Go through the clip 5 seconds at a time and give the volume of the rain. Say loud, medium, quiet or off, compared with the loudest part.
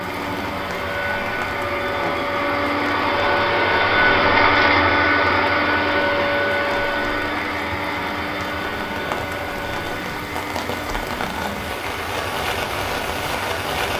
medium, medium, loud.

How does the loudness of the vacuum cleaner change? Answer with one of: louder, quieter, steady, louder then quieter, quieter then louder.
louder then quieter.